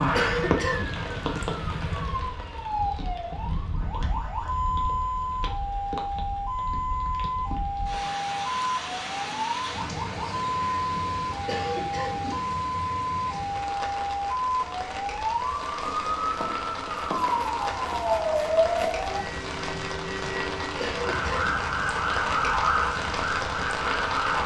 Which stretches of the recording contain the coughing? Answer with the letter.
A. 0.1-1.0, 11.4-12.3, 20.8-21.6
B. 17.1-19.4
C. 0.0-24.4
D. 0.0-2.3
A.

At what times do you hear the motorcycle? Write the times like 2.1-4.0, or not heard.
0.0-2.3.